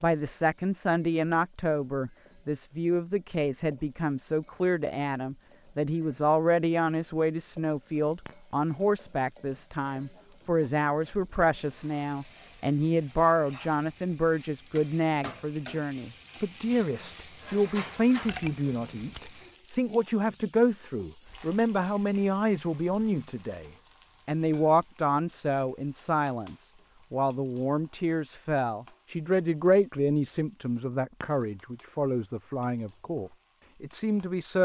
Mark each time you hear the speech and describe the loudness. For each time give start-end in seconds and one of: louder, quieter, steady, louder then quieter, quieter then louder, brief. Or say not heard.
0.0-34.5 steady.